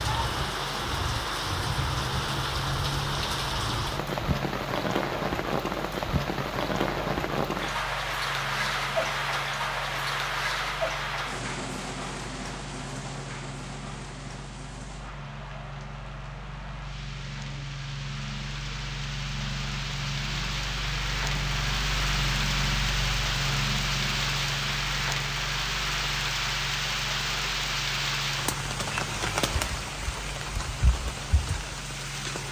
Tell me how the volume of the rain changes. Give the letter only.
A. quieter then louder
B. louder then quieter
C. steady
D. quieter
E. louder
A.